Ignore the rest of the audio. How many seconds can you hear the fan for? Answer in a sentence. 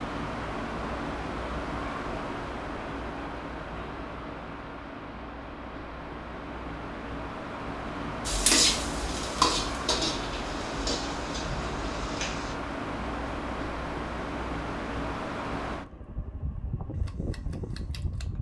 The fan can be heard for 18 seconds in total.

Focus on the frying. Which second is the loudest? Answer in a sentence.
The volume of the frying peaks at 9 seconds.